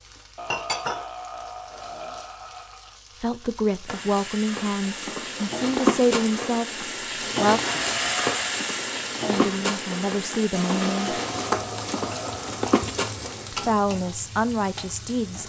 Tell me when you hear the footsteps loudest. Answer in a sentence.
The loudest moment of the footsteps is at 6 seconds.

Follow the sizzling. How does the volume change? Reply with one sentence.
The volume of the sizzling goes up, then down.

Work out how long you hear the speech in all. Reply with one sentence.
You can hear the speech for 8 seconds altogether.